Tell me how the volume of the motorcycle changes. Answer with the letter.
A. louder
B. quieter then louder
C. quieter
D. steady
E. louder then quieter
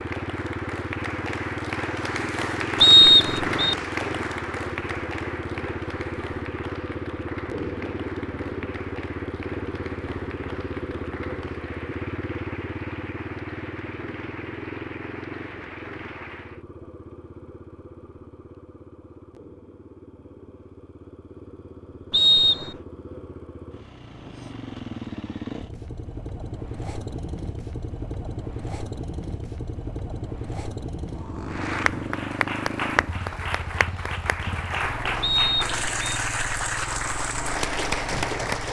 B.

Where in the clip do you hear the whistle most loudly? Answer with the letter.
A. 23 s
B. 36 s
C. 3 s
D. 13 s
C.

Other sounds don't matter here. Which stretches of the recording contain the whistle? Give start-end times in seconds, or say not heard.
2.8-3.8, 22.1-22.8, 35.2-36.2.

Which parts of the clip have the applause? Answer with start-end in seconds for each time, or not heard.
0.0-16.6, 31.4-38.6.